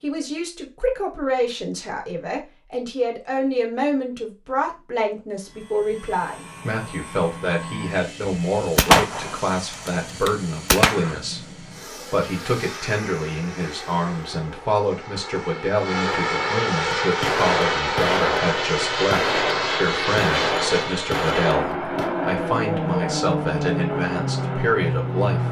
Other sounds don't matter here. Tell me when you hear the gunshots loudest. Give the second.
9 s.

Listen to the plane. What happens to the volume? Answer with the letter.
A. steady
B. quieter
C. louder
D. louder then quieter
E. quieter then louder
C.